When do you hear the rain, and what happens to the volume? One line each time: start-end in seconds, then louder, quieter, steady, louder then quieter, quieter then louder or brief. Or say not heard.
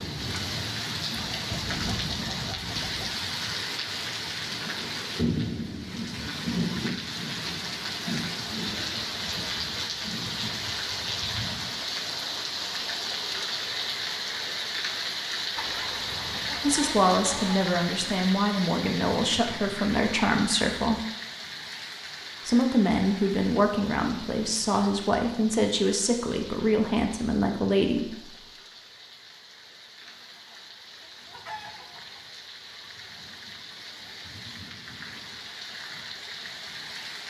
0.0-37.2 quieter.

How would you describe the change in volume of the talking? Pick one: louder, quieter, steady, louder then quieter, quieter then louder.
steady.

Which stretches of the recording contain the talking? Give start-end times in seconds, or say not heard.
16.6-21.0, 22.4-28.2.